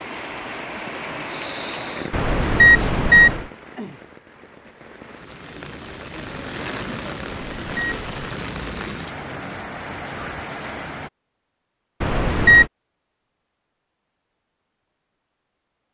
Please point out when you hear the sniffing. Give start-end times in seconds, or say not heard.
0.8-3.0.